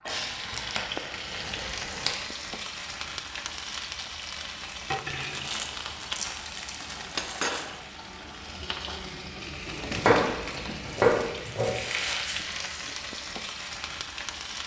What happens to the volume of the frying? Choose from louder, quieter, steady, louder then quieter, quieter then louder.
steady.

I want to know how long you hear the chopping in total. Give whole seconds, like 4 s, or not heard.
2 s.